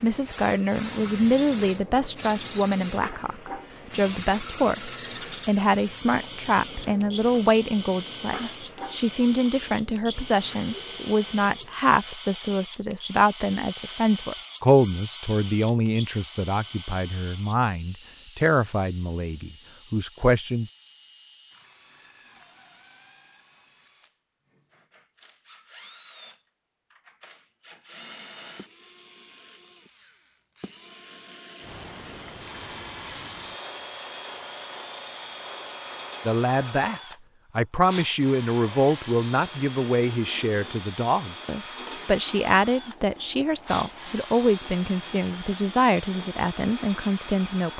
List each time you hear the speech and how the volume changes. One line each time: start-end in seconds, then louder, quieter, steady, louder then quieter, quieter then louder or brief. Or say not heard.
0.0-20.7 steady
36.2-47.7 steady.